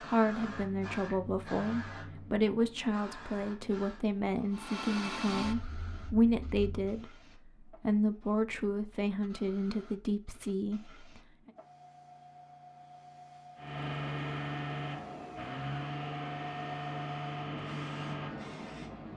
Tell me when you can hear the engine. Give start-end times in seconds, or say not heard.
4.5-7.0, 13.6-19.1.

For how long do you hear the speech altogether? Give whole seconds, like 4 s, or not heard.
11 s.